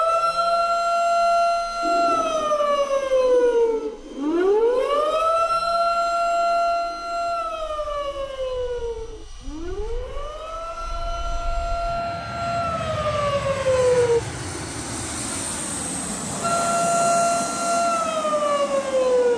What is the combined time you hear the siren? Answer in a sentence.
You can hear the siren for 17 seconds altogether.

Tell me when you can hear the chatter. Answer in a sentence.
The chatter can't be heard in this clip.